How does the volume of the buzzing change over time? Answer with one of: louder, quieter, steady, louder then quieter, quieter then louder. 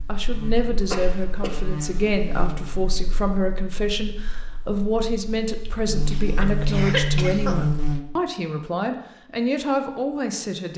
quieter then louder.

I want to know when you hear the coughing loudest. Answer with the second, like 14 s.
7 s.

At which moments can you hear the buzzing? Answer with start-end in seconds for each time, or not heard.
0.0-8.0.